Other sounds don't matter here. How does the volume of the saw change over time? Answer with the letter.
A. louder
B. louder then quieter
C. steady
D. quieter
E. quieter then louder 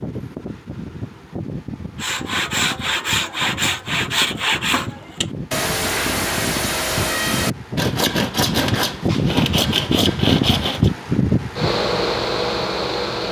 C.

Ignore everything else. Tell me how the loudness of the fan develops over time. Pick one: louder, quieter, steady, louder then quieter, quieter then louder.
louder.